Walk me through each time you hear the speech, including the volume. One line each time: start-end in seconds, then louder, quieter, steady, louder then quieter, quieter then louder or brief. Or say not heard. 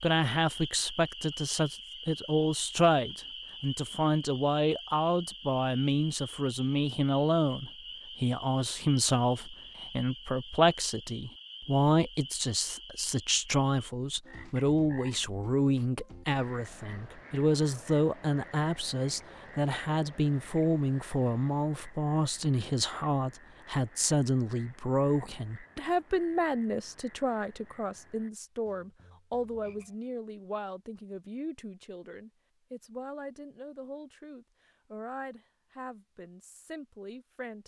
0.0-37.6 quieter.